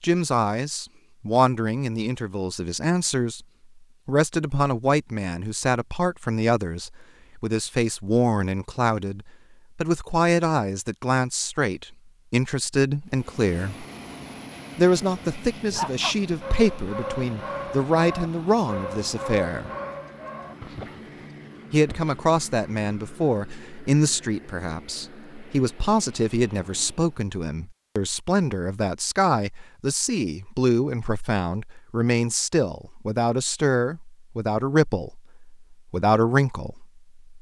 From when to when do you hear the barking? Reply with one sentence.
The barking can be heard from 15.7 to 22.1 s.